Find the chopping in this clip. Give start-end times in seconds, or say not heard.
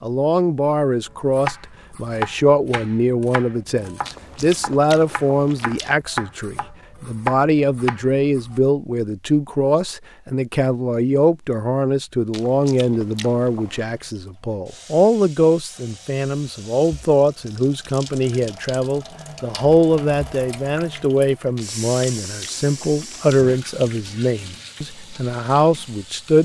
1.1-8.6.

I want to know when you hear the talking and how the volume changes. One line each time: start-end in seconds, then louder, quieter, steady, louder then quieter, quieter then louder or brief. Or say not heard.
0.0-26.4 steady.